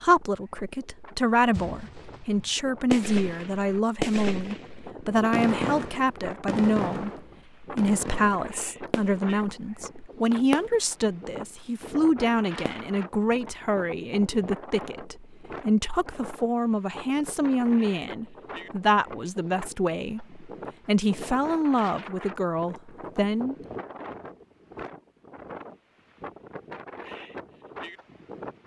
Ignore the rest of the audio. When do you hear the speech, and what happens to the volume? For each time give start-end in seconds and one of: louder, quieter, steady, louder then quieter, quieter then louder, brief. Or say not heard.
0.0-23.6 steady.